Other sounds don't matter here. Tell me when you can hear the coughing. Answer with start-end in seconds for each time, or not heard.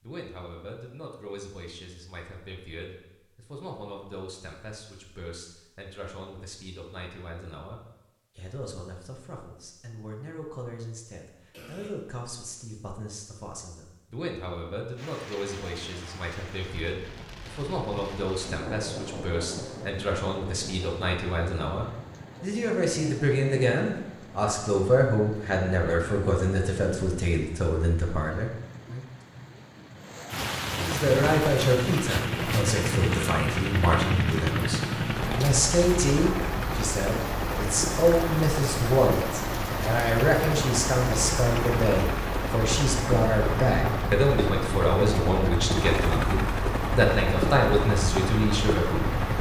11.5-11.9.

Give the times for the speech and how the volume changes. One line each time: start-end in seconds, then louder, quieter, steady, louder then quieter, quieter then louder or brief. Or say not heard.
0.0-29.1 louder
30.8-49.3 steady.